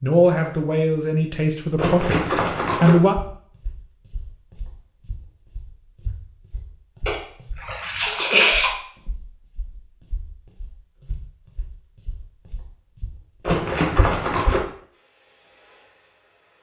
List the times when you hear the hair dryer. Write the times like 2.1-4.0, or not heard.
14.9-16.5.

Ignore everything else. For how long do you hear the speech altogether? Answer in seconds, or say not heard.
3 s.